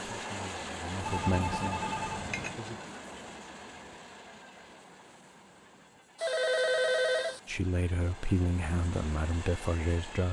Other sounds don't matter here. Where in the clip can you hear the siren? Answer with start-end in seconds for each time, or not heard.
not heard.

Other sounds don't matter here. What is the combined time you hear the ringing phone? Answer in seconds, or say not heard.
3 s.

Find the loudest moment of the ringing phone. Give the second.
7 s.